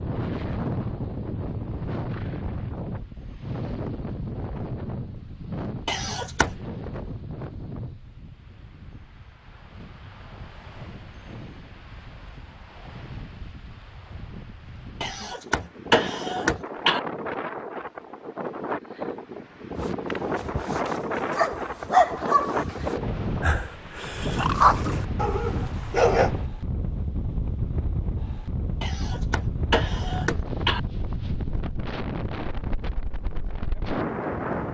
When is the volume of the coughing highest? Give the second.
16 s.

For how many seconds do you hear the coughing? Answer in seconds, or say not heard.
5 s.